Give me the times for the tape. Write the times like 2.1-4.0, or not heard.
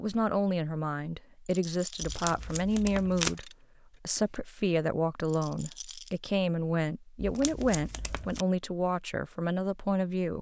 2.0-3.4, 7.2-8.4.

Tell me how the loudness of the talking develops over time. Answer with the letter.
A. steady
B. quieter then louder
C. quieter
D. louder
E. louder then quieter
A.